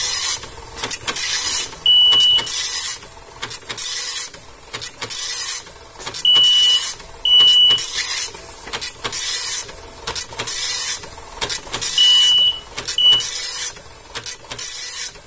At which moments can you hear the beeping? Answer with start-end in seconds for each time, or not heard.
1.6-2.5, 6.0-7.8, 11.7-13.2.